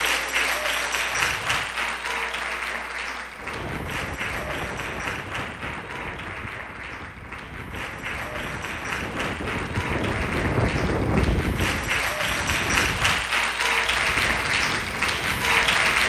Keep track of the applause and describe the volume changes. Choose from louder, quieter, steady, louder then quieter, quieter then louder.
quieter then louder.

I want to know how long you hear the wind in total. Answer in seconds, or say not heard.
13 s.